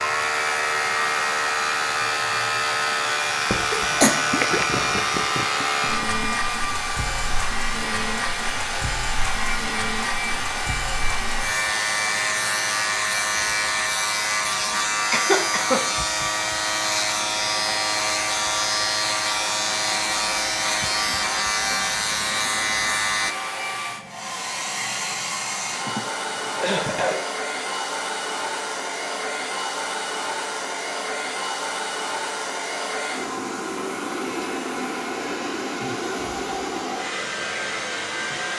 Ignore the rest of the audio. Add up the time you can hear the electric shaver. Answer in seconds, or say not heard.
23 s.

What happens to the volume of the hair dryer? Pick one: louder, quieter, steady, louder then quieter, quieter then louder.
steady.